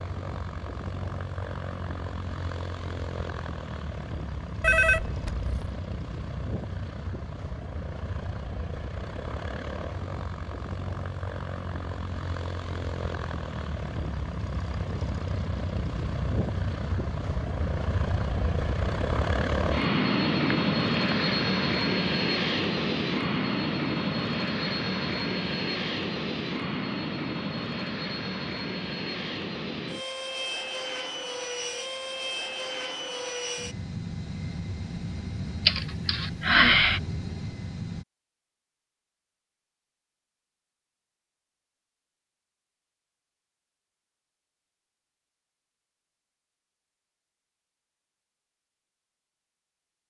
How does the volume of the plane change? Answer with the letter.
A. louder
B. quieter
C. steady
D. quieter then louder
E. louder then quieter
E.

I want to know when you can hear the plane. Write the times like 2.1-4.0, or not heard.
0.0-38.0.